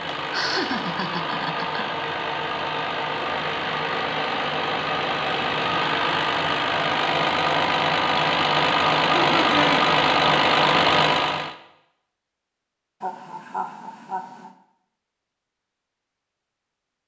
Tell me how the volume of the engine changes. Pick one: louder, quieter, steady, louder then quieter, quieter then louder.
louder.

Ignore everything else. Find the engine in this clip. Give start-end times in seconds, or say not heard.
0.0-11.6.